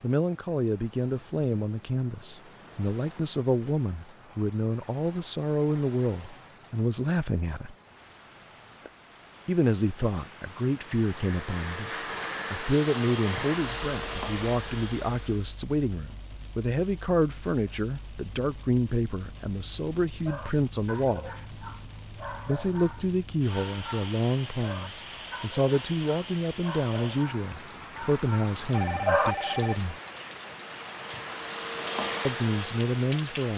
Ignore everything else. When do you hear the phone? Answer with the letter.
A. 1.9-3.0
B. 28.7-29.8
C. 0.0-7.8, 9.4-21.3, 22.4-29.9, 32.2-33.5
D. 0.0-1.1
B.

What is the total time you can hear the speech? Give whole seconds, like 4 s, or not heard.
28 s.